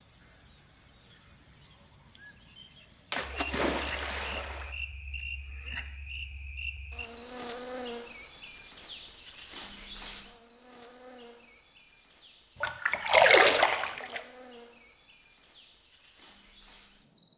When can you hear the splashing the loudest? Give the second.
13 s.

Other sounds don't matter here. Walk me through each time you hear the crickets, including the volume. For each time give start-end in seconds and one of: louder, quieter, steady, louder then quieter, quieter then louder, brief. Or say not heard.
0.0-17.3 quieter.